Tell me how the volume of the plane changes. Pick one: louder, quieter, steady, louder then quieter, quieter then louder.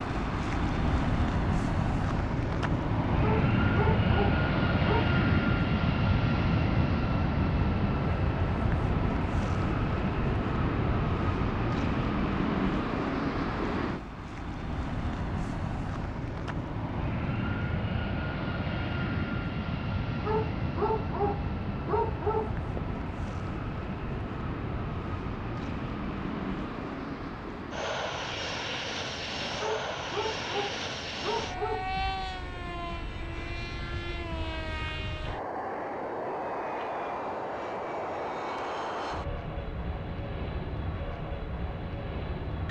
quieter.